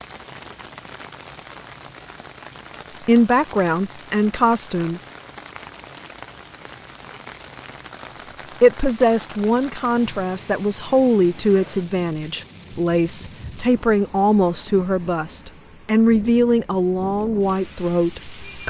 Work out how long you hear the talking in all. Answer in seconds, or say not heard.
12 s.